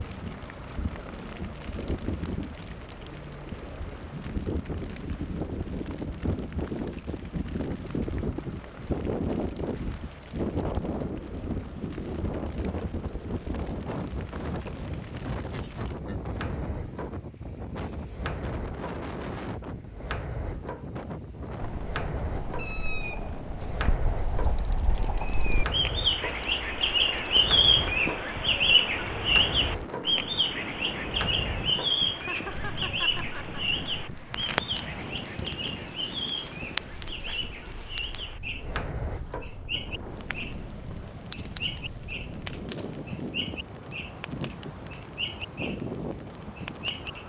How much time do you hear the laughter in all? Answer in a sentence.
The laughter can be heard for 2 seconds in total.